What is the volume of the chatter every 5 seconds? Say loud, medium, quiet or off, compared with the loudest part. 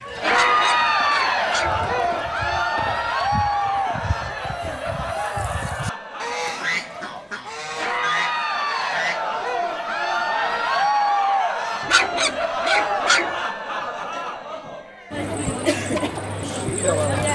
loud, medium, loud, loud.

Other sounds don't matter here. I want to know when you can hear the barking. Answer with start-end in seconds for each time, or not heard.
0.3-1.8, 11.8-13.3.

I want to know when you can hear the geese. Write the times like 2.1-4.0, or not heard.
0.0-11.0.